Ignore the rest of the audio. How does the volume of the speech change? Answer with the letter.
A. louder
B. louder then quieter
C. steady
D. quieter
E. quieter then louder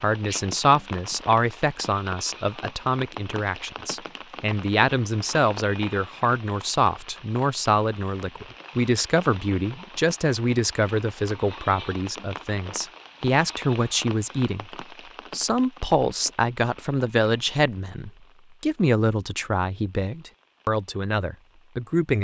C.